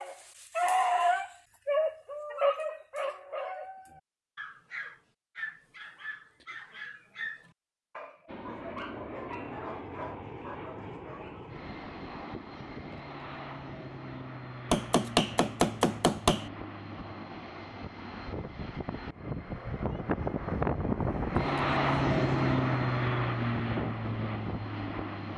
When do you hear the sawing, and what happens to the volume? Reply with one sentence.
You can't hear the sawing here.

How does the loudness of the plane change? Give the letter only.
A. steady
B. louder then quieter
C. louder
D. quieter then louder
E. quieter
C.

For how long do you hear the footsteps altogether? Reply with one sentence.
The footsteps can't be heard in this clip.